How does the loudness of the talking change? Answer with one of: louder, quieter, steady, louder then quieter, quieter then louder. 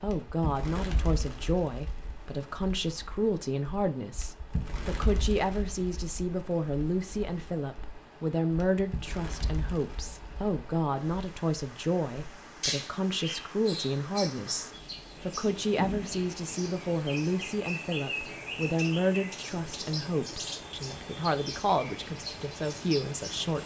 steady.